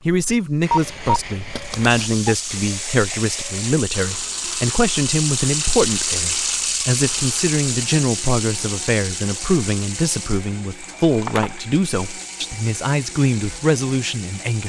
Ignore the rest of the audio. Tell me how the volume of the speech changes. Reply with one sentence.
The loudness of the speech stays about the same.